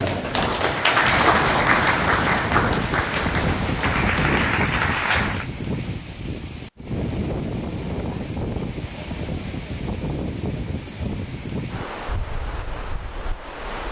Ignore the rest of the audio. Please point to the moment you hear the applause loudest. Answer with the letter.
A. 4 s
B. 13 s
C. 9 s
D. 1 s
D.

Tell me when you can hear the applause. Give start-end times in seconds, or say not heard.
0.0-5.5.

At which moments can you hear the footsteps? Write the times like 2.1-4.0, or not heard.
not heard.